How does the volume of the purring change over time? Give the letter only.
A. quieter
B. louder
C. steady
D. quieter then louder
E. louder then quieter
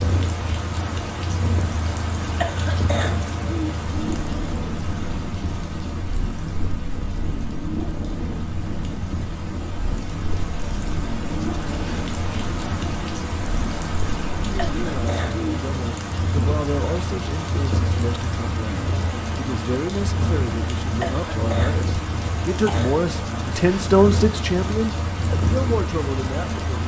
C.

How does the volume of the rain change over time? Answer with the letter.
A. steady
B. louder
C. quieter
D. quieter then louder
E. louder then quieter
D.